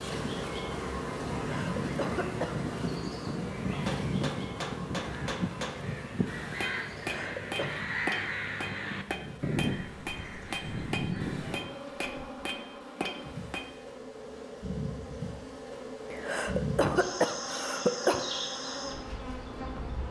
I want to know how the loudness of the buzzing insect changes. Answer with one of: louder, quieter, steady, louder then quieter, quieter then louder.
quieter then louder.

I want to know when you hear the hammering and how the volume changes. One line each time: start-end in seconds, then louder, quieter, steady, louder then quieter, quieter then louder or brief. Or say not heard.
3.9-13.8 steady.